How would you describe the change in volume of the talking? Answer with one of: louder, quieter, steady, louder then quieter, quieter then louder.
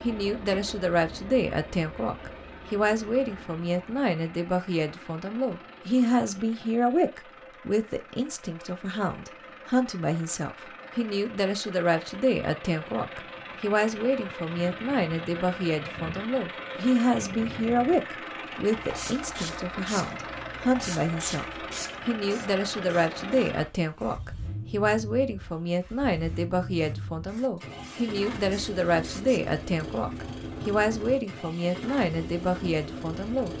steady.